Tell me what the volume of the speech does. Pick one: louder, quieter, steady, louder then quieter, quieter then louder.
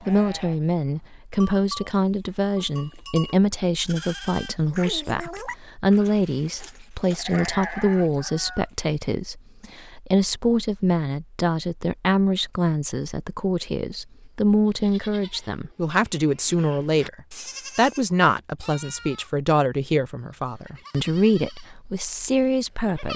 steady.